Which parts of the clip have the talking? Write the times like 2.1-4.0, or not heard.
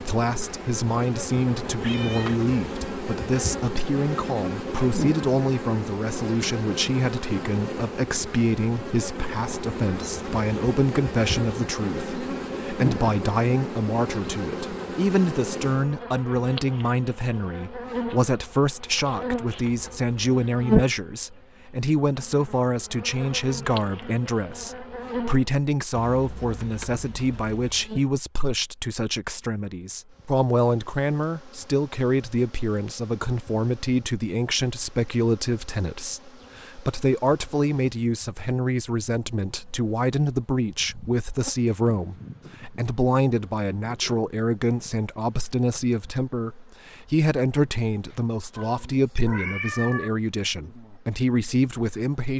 0.0-52.3.